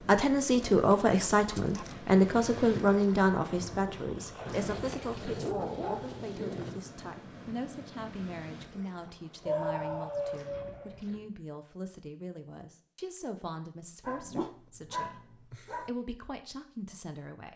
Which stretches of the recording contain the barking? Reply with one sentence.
The barking can be heard from 0.5 to 2.0 s, from 4.5 to 6.8 s, from 9.4 to 11.0 s and from 14.0 to 15.9 s.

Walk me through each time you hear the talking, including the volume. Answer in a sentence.
The talking can be heard from 0.1 to 17.5 s, getting quieter.